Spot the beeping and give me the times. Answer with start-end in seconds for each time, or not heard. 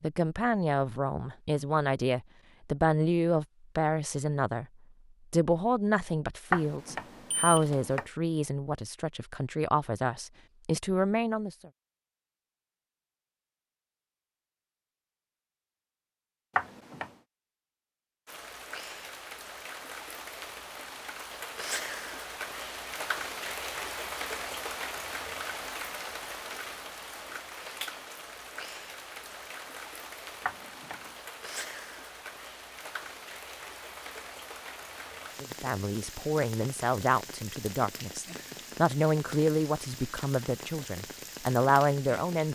6.5-8.1, 16.6-17.1, 30.4-31.1.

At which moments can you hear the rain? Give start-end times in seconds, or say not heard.
18.2-42.5.